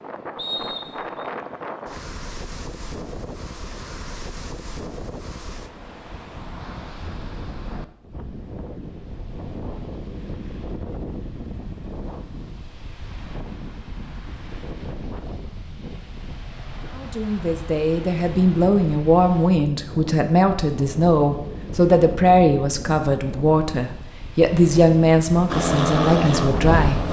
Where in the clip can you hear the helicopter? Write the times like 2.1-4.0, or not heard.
25.4-27.0.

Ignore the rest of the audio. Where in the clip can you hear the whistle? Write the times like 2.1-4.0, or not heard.
0.3-1.2.